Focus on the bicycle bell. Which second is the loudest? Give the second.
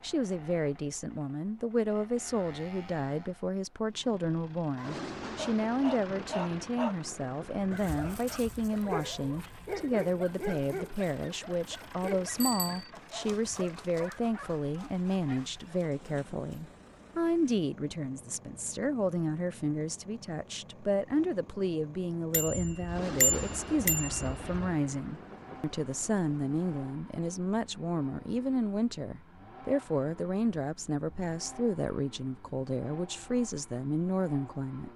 23 s.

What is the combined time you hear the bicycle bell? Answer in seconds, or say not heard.
3 s.